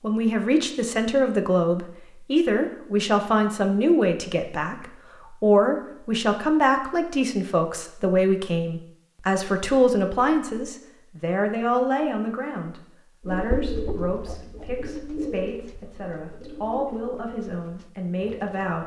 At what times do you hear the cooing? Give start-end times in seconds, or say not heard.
13.2-18.8.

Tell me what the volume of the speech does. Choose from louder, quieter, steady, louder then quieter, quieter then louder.
quieter.